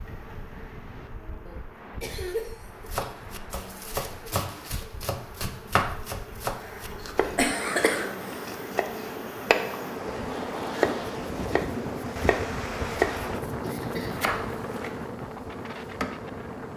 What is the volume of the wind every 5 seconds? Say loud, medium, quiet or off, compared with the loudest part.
quiet, medium, loud, medium.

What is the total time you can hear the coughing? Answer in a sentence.
You can hear the coughing for 5 seconds altogether.